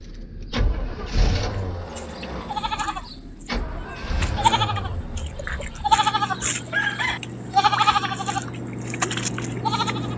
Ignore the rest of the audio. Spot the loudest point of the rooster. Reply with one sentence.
The volume of the rooster peaks at 7 seconds.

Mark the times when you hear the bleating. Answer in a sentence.
The bleating can be heard from 1.5 to 10.1 s.